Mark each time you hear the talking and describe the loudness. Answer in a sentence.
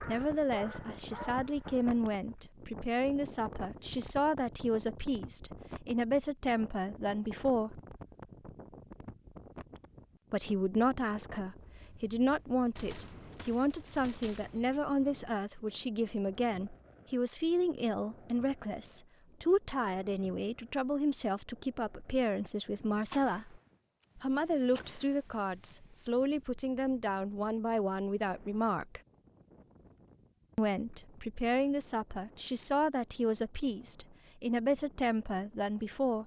You can hear the talking from 0.1 to 7.8 s, at a steady volume; from 10.3 to 29.0 s, at a steady volume; and from 30.6 to 36.2 s, at a steady volume.